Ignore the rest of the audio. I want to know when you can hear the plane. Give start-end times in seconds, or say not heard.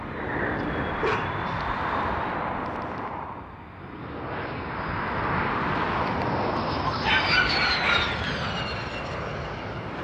0.0-10.0.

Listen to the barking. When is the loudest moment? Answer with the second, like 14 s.
7 s.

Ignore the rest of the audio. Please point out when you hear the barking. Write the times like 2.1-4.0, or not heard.
1.0-1.6, 6.8-8.2.